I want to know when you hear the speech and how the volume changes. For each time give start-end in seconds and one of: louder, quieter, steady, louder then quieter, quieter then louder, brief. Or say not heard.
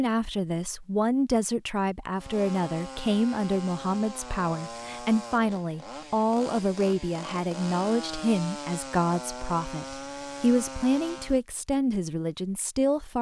0.0-13.1 steady.